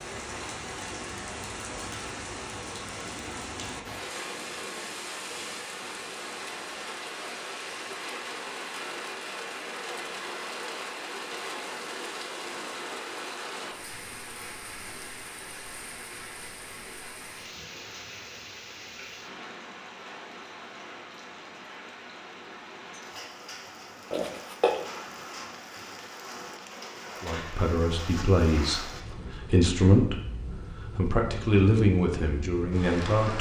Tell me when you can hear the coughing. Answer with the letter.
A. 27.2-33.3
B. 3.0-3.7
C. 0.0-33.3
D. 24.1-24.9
D.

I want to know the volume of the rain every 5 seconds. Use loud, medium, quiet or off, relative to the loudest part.
loud, loud, loud, medium, medium, loud, loud.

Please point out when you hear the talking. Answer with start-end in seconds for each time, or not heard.
27.2-33.3.